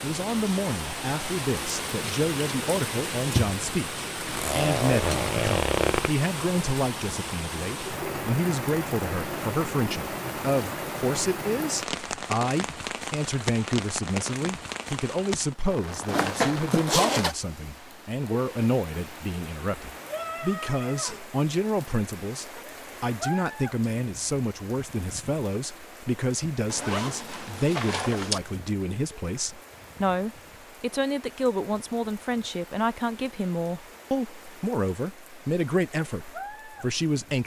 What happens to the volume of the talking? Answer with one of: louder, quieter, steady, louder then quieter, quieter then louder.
steady.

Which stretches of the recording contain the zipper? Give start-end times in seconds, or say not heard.
4.3-6.1, 16.1-17.4, 26.7-28.4.